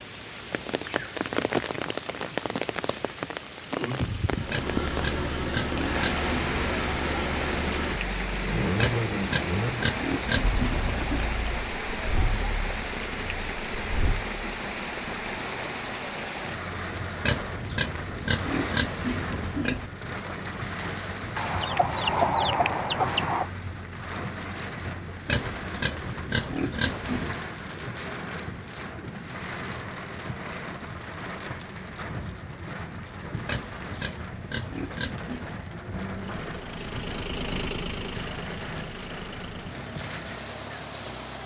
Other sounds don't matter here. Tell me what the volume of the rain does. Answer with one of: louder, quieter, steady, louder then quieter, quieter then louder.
quieter.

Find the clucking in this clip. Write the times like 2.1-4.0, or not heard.
21.4-23.5.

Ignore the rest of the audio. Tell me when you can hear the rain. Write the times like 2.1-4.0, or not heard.
0.0-41.4.